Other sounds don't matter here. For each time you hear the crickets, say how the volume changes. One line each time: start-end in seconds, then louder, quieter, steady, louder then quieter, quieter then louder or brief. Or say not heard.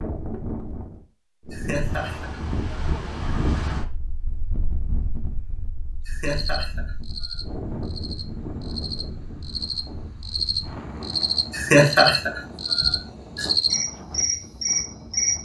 6.2-15.4 louder.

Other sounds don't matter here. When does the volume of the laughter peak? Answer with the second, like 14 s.
12 s.